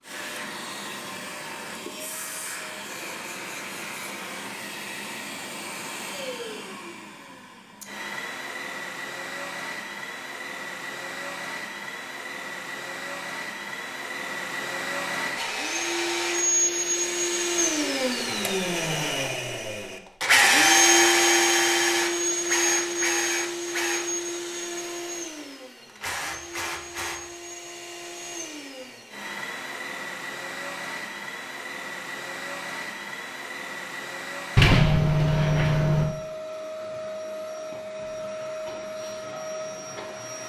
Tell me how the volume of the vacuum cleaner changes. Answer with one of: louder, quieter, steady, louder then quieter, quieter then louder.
louder then quieter.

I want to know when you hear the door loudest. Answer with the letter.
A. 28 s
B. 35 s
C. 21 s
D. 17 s
B.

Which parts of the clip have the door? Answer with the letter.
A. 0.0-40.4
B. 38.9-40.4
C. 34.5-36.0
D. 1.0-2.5
C.